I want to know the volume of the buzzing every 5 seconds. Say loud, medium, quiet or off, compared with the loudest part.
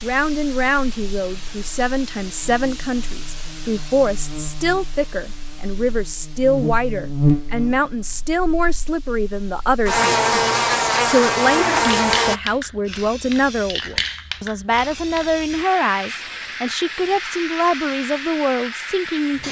quiet, medium, loud, off.